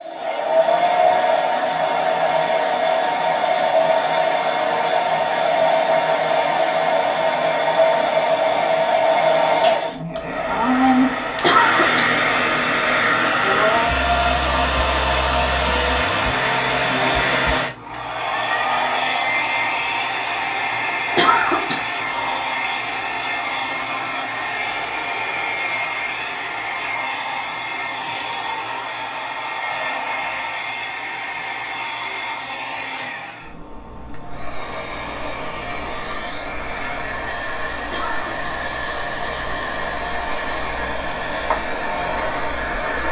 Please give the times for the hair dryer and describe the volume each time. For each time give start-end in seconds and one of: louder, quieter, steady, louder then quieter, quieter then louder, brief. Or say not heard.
0.0-43.0 quieter.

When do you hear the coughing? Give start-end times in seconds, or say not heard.
11.4-12.1, 21.1-21.9, 37.9-38.5.